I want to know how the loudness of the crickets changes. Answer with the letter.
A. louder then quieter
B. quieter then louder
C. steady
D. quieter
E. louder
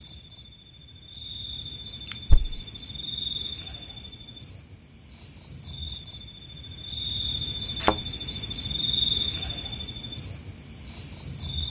E.